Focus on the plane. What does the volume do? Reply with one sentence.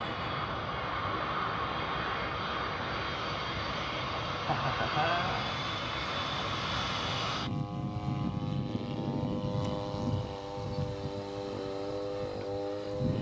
The loudness of the plane stays about the same.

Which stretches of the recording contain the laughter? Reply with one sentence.
You can hear the laughter from 4.4 to 5.6 s.